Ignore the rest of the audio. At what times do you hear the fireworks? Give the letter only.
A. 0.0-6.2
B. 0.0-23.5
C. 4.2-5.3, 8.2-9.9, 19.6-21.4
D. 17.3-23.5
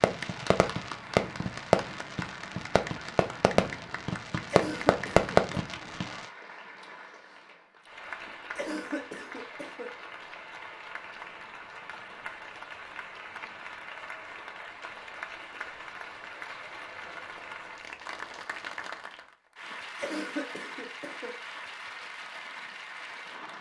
A.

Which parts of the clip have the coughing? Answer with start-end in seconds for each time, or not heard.
4.2-5.3, 8.2-9.9, 19.6-21.4.